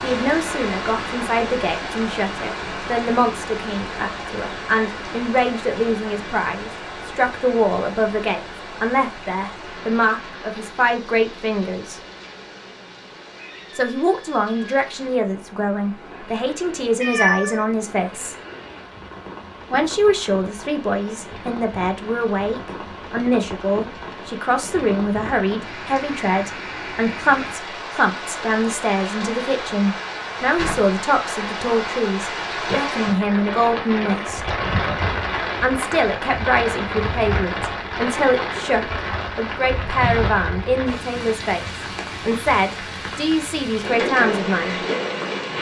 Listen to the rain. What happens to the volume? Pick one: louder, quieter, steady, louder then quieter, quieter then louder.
quieter then louder.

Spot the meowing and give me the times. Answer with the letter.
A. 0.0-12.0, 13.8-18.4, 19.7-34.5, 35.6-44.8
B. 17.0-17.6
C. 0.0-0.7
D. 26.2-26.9
B.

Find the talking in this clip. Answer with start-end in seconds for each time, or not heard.
0.0-12.0, 13.8-18.4, 19.7-34.5, 35.6-44.8.